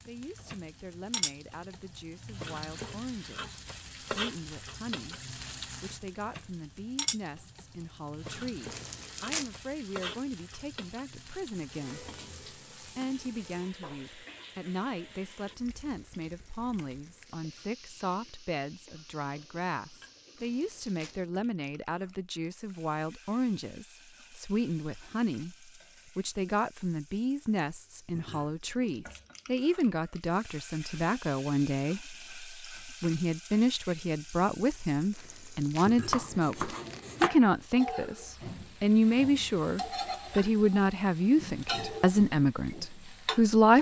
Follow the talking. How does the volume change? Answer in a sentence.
The loudness of the talking goes up.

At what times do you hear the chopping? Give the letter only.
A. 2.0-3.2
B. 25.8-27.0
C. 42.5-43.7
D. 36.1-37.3
D.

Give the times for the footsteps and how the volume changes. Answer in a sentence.
You can't hear the footsteps here.